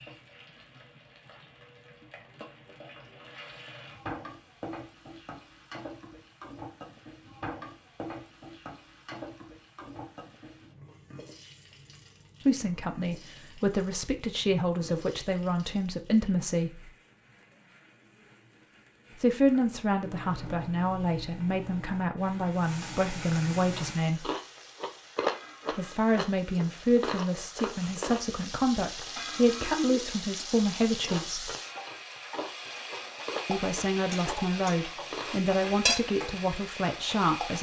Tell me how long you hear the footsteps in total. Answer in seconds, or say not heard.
not heard.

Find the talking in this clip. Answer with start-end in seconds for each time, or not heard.
12.4-16.9, 19.1-24.3, 25.7-31.5, 33.5-37.5.